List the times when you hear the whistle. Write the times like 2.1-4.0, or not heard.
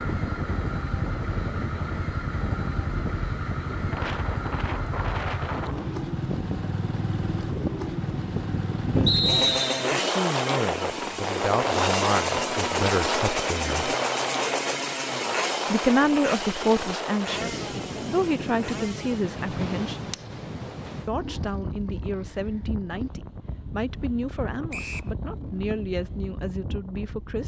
9.1-9.9, 24.7-25.1.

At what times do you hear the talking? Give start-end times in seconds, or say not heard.
8.9-13.9, 15.7-20.2, 21.1-27.4.